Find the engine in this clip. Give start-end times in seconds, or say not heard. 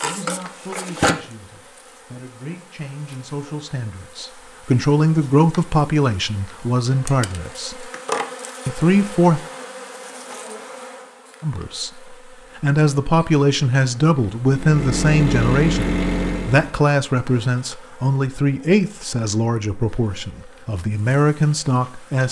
14.4-16.8.